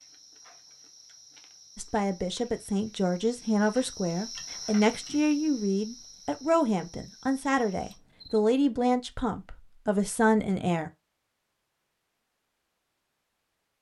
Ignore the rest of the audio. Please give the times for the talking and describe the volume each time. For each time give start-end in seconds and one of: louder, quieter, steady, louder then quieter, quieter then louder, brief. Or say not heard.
1.8-10.9 steady.